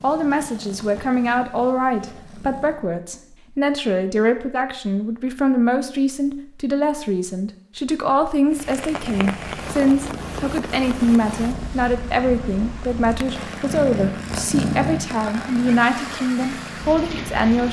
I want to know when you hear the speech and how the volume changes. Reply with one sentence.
The speech can be heard from 0.0 to 17.6 s, at a steady volume.